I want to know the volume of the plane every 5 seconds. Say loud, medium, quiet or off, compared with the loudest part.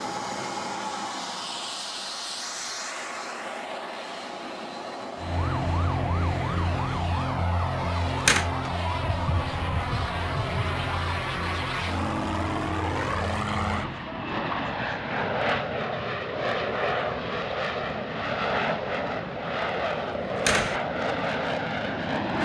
medium, medium, loud, loud, loud.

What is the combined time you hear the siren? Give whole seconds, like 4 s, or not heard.
9 s.